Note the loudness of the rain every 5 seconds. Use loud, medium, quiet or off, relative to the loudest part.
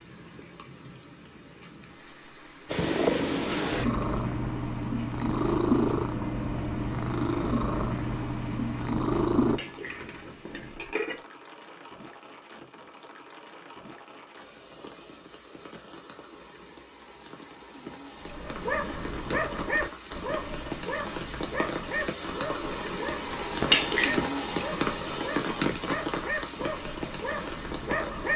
quiet, quiet, quiet, medium, loud, loud.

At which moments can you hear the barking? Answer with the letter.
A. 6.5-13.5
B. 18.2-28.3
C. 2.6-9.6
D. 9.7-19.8
B.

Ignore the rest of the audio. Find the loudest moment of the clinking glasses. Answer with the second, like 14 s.
24 s.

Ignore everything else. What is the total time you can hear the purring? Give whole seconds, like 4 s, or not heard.
7 s.